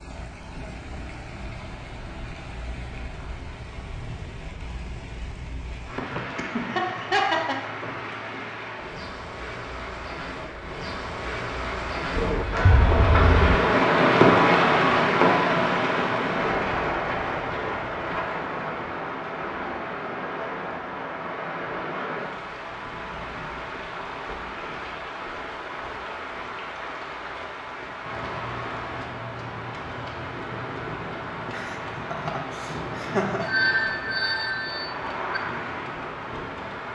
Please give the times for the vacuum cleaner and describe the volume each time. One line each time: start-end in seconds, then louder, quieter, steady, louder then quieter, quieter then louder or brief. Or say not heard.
not heard.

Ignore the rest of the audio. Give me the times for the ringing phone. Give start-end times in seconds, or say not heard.
12.2-13.6, 33.4-35.4.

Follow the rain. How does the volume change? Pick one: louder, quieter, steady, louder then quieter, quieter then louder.
louder then quieter.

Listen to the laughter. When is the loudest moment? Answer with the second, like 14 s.
7 s.